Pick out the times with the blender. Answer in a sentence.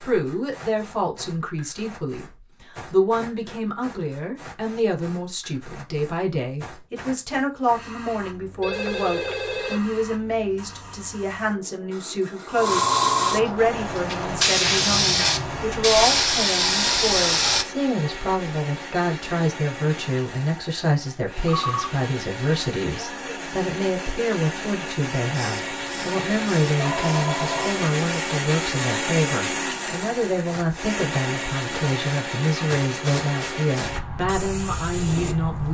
The blender can be heard from 13.6 to 34.0 s.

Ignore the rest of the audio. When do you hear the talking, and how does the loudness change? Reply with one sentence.
The talking can be heard from 0.0 to 35.6 s, at a steady volume.